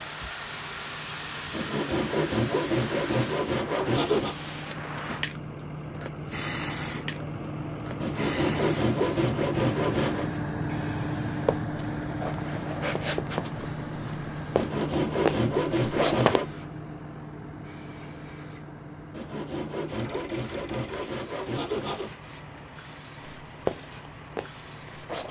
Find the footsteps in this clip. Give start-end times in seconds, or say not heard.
11.4-16.4, 23.2-25.2.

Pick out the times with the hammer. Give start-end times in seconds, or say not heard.
not heard.